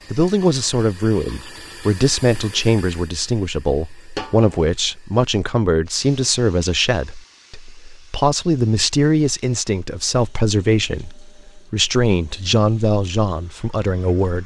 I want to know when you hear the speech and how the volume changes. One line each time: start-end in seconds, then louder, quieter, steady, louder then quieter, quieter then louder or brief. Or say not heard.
0.1-14.4 steady.